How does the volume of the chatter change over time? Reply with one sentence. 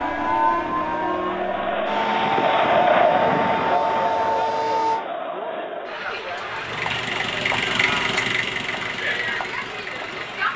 The loudness of the chatter goes up, then down.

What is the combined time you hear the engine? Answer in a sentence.
You can hear the engine for 4 seconds altogether.